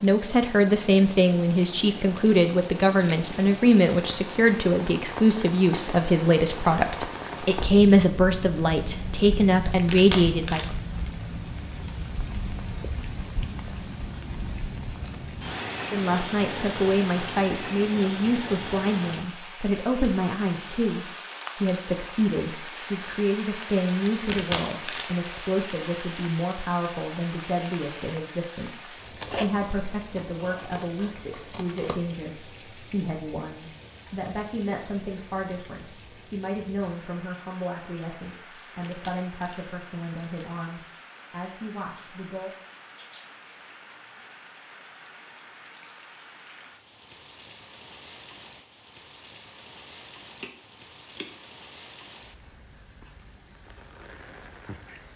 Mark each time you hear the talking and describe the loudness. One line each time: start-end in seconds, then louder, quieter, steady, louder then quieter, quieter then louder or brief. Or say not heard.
0.0-10.7 steady
15.8-42.5 quieter.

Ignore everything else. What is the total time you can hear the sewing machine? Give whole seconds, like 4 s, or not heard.
not heard.